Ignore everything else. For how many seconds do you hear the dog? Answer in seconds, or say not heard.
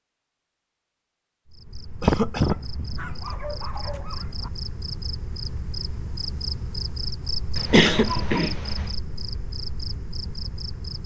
2 s.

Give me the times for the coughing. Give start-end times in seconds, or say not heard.
2.0-2.6, 7.5-8.9.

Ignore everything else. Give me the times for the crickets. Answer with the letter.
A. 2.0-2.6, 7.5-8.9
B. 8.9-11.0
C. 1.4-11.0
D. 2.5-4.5
C.